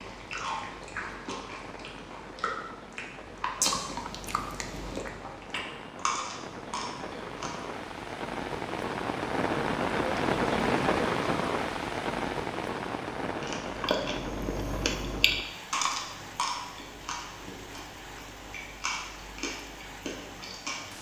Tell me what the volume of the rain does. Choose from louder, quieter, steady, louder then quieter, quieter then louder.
louder then quieter.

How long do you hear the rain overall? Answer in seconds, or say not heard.
21 s.